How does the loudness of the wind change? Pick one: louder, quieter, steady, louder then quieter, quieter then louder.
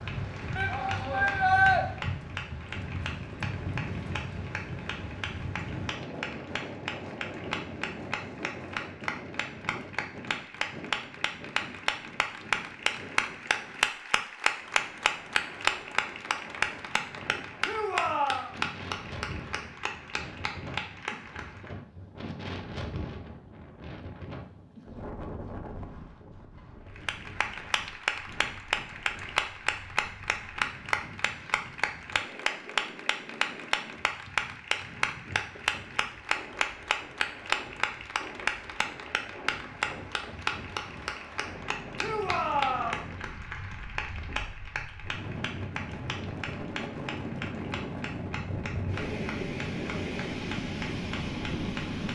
quieter then louder.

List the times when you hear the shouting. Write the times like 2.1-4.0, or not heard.
0.6-1.9, 17.6-18.5, 42.0-43.0.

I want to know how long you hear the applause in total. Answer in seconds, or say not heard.
47 s.